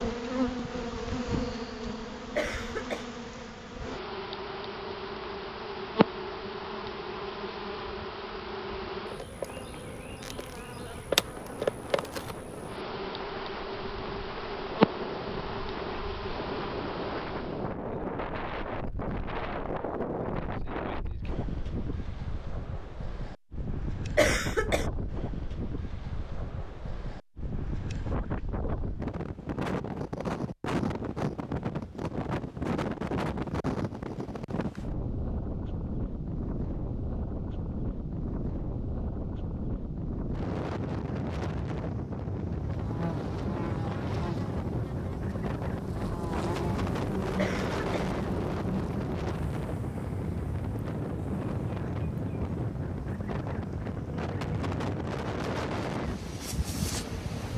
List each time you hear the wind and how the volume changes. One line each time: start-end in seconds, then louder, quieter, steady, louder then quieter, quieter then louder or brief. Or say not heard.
0.1-57.5 louder.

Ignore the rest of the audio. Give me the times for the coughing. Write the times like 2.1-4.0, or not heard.
2.4-3.0, 24.1-24.9, 47.4-48.0.